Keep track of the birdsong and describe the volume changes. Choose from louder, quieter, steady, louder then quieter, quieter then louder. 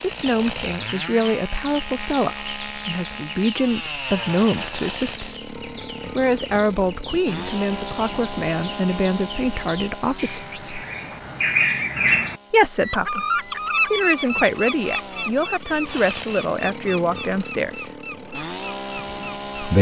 louder then quieter.